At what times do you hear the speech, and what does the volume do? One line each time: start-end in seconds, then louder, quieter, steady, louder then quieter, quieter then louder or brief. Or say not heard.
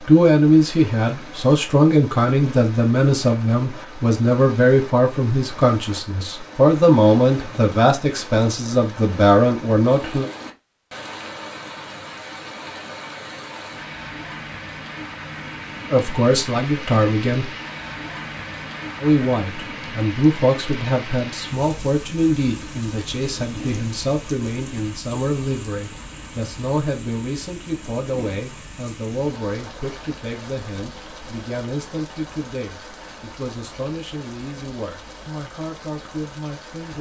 0.1-10.2 steady
15.9-17.5 brief
19.0-36.9 quieter.